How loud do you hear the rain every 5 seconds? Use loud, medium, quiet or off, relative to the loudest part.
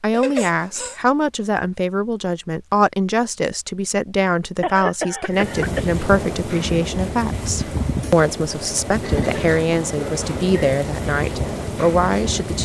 off, loud, loud.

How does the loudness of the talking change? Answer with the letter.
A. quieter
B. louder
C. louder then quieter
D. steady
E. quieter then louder
D.